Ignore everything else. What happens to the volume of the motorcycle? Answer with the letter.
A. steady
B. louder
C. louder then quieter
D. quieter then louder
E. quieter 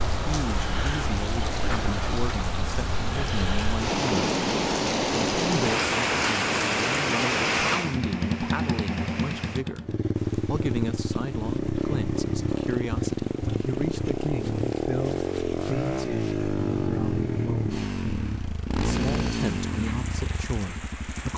A.